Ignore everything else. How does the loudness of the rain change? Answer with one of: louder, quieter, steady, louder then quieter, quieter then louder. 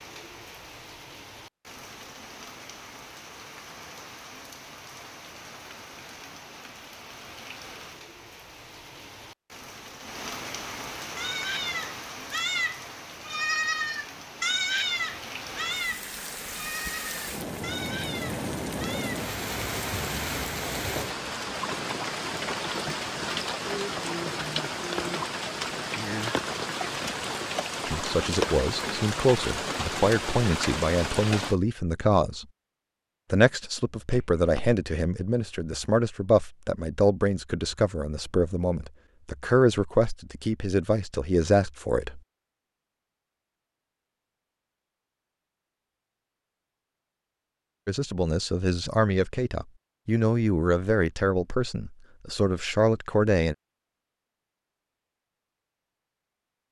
louder.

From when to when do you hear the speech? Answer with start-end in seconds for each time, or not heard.
27.9-32.5, 33.3-42.2, 47.9-53.5.